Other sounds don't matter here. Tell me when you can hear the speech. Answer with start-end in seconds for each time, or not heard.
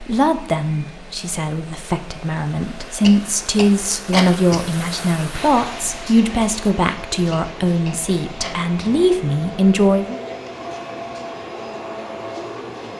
0.0-10.2.